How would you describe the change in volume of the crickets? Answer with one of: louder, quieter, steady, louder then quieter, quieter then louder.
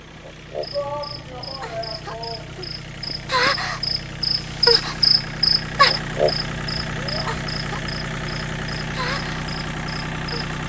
louder then quieter.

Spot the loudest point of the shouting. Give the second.
1 s.